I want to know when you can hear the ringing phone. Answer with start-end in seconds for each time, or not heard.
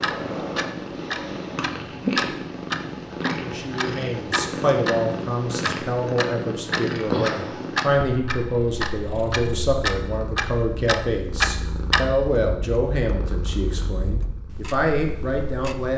not heard.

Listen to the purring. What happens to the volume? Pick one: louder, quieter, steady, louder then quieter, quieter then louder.
quieter.